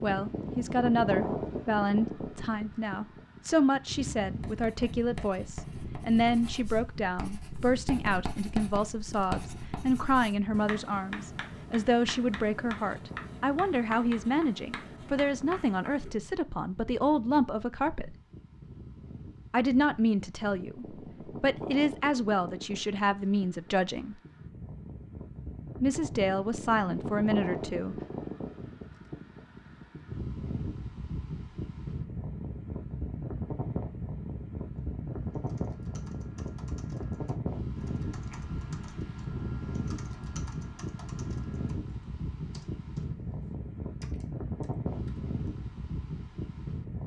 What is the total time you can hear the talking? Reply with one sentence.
The talking can be heard for 25 seconds in total.